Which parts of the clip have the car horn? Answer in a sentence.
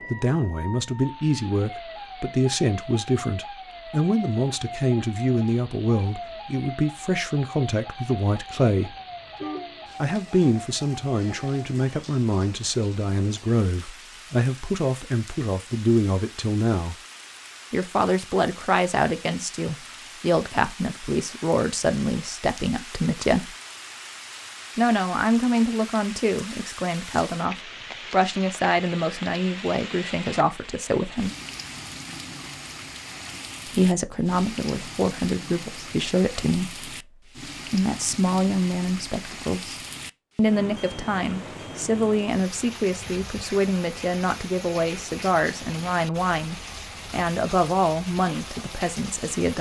You can hear the car horn from 8.8 to 9.9 s.